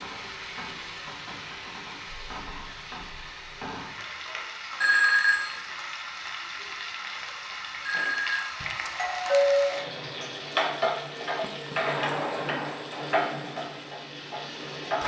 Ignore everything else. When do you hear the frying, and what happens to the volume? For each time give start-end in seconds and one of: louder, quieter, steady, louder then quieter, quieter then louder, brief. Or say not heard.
0.0-15.0 louder.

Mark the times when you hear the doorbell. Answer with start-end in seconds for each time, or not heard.
4.8-5.5, 7.8-9.8.